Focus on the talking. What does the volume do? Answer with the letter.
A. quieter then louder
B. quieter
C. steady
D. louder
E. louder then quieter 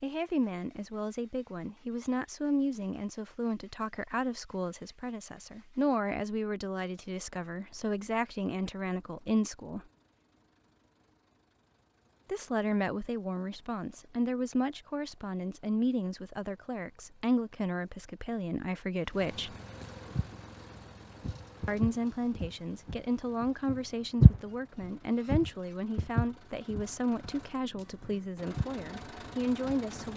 C.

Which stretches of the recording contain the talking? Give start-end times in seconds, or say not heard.
0.0-9.8, 12.2-19.6, 21.6-30.1.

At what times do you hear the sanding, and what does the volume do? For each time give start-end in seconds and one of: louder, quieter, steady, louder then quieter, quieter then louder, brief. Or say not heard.
not heard.